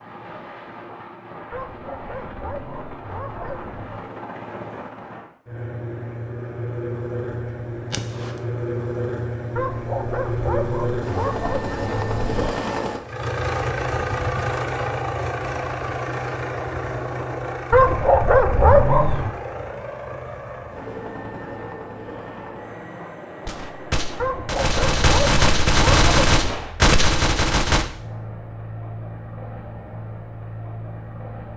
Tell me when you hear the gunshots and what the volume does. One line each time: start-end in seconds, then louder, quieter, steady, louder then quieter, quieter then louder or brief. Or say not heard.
7.9-8.3 brief
23.4-27.9 louder.